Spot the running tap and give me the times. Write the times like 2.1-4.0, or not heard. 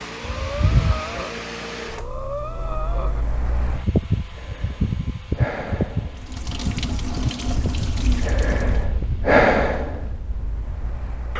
6.2-8.8.